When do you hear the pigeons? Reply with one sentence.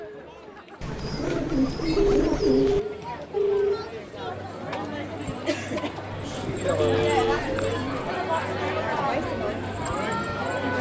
You can hear the pigeons from 0.8 to 2.8 s and from 6.3 to 8.1 s.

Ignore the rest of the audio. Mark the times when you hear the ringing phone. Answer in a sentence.
You can hear the ringing phone from 1.9 to 3.9 s and from 6.8 to 7.4 s.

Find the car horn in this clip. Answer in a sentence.
You can't hear the car horn here.